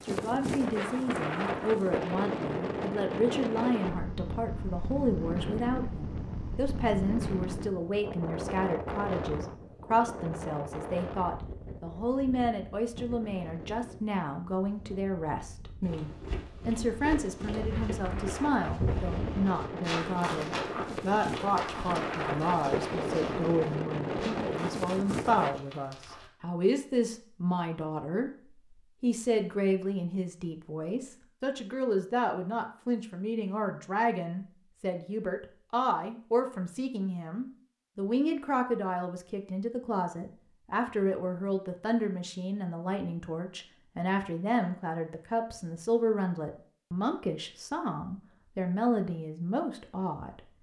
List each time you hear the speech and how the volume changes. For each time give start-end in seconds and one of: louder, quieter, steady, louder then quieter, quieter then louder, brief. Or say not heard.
0.0-50.4 steady.